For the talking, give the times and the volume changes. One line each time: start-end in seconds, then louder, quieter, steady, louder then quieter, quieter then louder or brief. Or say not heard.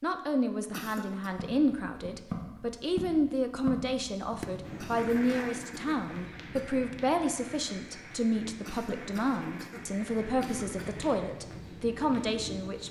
0.0-12.8 steady.